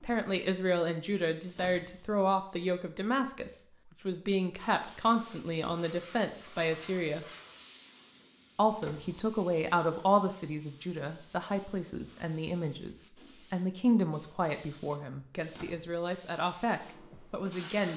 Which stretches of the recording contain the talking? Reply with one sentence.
You can hear the talking from 0.0 to 7.2 s and from 8.6 to 17.9 s.